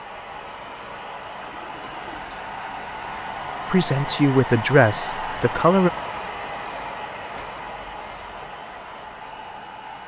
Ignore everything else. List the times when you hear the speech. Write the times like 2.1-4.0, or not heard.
3.7-5.9.